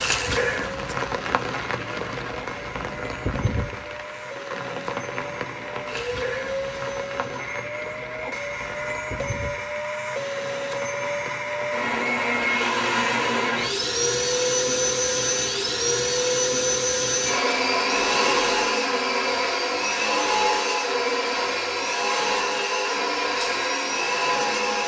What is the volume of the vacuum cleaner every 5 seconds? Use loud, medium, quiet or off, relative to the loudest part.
quiet, medium, loud, loud, loud.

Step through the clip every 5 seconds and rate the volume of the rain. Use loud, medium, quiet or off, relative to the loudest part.
loud, medium, medium, off, off.